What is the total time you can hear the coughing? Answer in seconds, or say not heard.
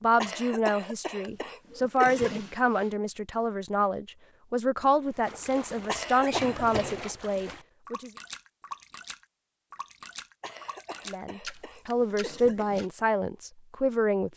6 s.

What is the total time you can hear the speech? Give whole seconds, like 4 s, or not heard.
11 s.